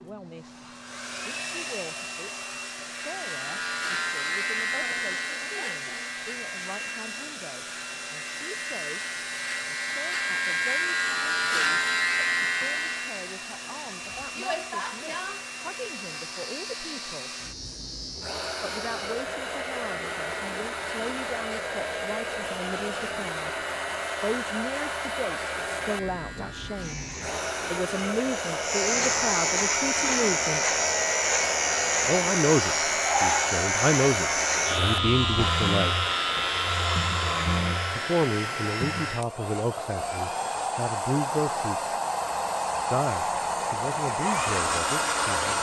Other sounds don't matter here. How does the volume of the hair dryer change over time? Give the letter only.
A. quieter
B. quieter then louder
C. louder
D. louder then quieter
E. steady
C.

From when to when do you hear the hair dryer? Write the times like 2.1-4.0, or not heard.
0.0-45.5.